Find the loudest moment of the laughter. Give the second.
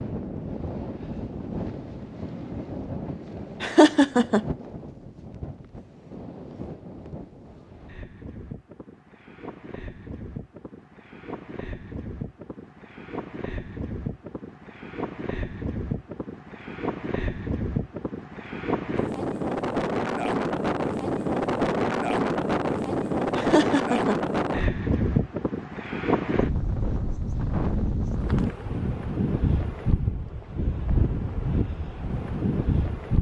4 s.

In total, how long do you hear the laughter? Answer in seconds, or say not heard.
2 s.